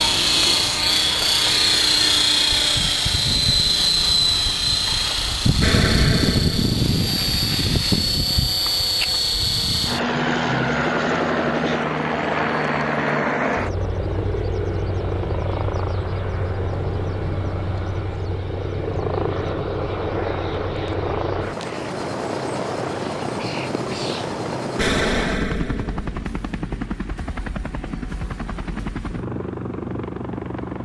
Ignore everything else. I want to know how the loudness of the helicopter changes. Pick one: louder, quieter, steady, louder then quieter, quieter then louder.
quieter.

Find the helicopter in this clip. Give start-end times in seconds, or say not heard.
0.0-30.7.